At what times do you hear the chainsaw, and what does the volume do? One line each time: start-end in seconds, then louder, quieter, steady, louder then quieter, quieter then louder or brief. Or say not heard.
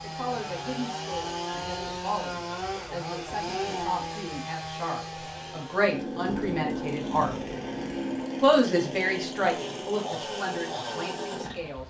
0.0-11.8 steady.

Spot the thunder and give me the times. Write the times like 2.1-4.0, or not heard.
6.2-8.2.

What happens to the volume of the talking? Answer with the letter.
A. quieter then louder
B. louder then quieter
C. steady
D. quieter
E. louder
B.